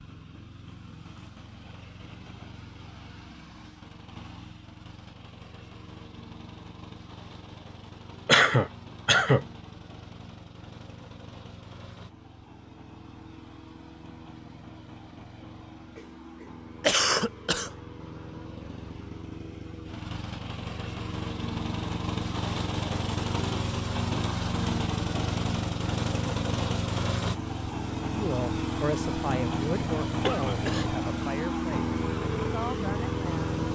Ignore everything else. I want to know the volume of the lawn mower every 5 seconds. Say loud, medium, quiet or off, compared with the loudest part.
quiet, quiet, quiet, quiet, loud, loud, loud.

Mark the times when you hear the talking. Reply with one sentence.
You can hear the talking from 28.1 to 33.5 s.